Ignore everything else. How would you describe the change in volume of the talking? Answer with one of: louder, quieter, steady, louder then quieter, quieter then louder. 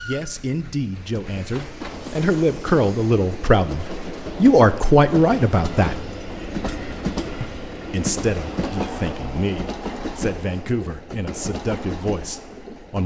louder then quieter.